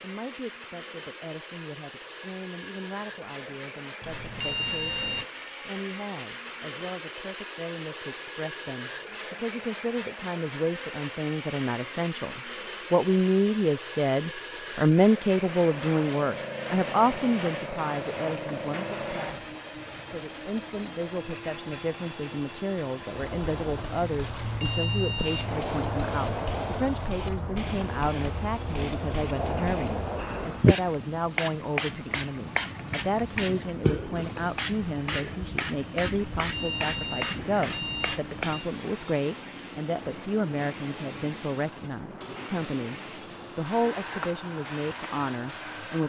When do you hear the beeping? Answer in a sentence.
You can hear the beeping from 4.0 to 5.2 s, from 24.4 to 25.6 s and from 36.1 to 38.6 s.